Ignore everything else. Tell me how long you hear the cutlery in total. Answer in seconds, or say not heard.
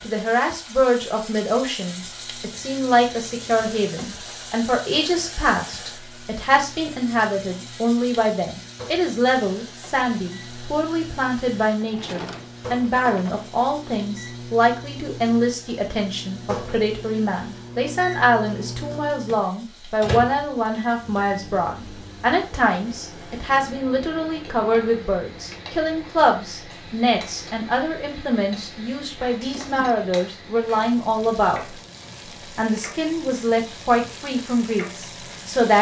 not heard.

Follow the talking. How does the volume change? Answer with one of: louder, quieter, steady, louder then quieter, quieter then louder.
steady.